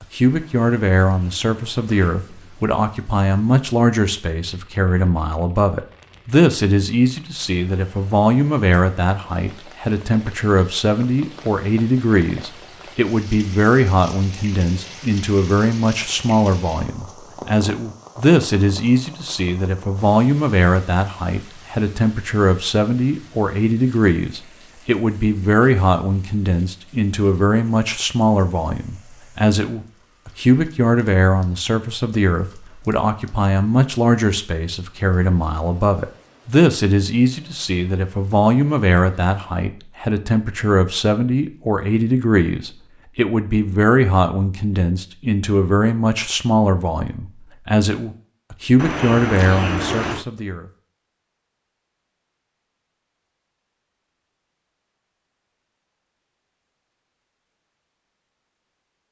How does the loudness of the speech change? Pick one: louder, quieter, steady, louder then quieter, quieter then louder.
steady.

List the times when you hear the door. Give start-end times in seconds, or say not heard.
0.3-2.7, 48.8-50.2.